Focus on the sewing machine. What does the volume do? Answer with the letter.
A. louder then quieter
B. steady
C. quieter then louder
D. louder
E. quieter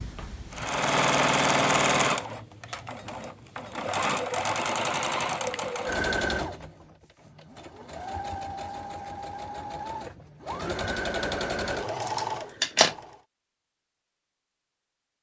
C.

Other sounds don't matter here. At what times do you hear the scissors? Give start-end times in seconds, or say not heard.
12.0-12.9.